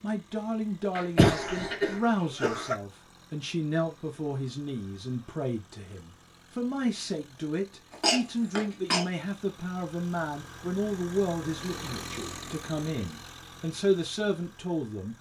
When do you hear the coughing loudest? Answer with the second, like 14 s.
1 s.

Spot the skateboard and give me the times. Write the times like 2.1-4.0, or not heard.
not heard.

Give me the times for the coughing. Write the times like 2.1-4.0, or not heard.
0.9-2.8, 7.9-9.1.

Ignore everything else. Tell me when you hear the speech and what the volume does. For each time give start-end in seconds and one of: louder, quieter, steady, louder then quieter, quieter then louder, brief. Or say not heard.
0.0-15.1 steady.